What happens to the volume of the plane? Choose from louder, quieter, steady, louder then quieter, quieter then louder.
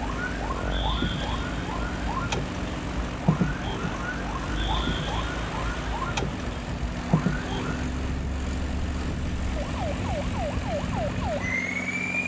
steady.